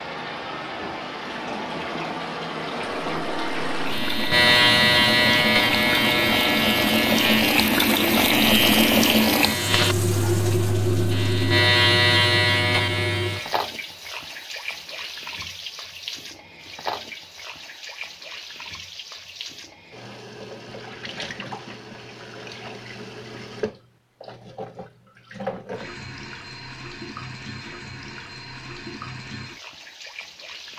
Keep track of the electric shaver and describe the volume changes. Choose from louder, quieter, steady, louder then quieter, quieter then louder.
quieter then louder.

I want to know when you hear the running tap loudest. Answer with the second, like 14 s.
9 s.